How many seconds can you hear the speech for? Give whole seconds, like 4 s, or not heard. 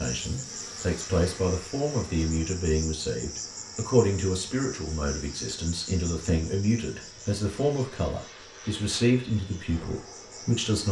11 s.